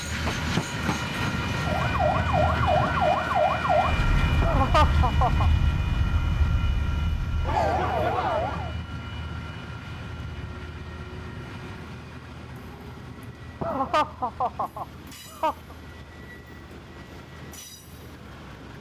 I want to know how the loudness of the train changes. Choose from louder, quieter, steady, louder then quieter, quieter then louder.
quieter.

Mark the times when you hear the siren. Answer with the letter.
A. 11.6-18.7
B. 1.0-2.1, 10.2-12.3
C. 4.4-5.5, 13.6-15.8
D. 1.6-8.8
D.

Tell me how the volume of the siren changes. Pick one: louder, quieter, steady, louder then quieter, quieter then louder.
quieter then louder.